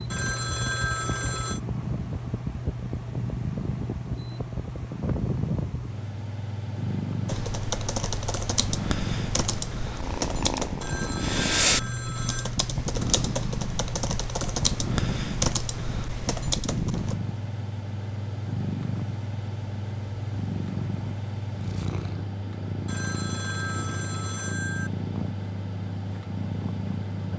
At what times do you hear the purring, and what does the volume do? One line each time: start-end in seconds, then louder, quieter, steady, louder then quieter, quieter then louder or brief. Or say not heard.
0.0-27.3 steady.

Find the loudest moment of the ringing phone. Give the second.
1 s.